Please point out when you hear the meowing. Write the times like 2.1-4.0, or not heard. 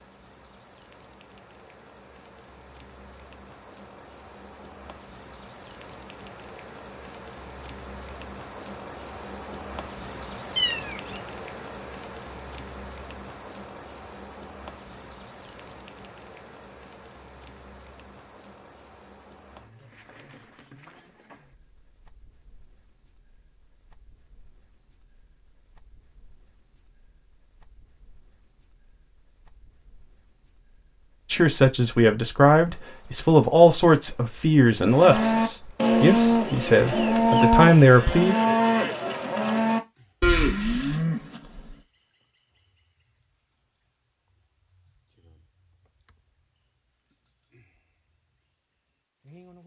10.6-11.2.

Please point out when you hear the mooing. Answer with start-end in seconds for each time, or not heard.
34.9-41.8.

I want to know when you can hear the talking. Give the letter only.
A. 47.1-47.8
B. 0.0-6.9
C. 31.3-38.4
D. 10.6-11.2
C.